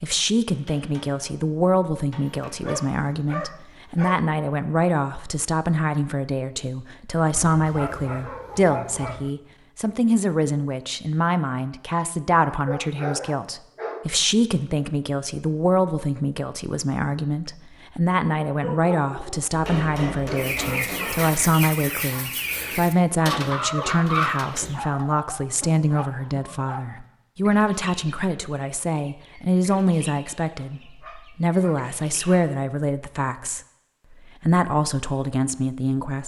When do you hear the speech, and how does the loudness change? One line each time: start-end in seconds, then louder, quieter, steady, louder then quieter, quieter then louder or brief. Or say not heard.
0.0-36.2 steady.